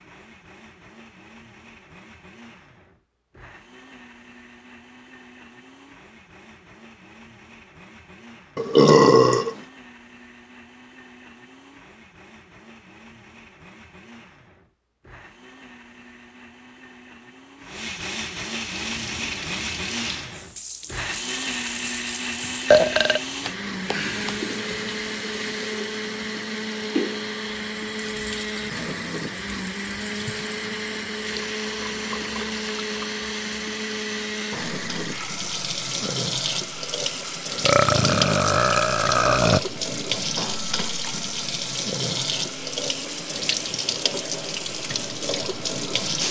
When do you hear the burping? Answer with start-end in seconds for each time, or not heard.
8.6-9.6, 22.7-24.4, 37.6-39.6.